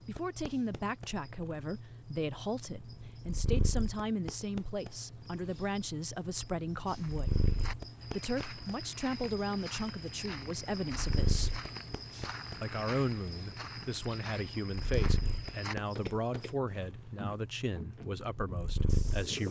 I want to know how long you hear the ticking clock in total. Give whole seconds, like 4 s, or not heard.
not heard.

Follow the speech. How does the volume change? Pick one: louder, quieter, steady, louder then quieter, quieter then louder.
steady.